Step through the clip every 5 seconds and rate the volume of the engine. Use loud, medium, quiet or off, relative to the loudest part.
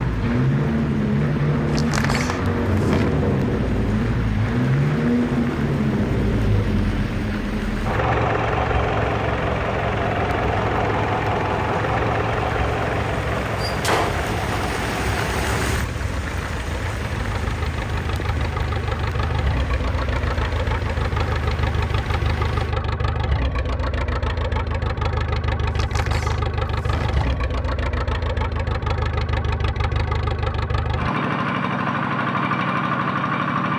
loud, loud, loud, medium, medium, medium, loud.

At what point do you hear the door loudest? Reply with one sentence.
The volume of the door peaks at 14 seconds.